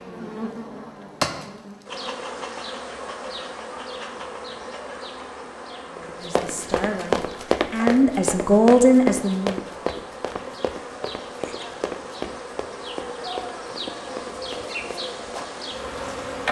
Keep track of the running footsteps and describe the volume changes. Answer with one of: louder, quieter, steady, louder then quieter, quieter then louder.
quieter.